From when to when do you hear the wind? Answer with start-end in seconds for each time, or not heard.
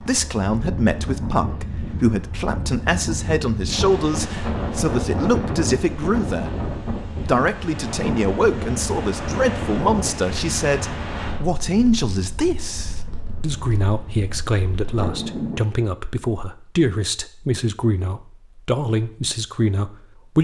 0.0-15.6.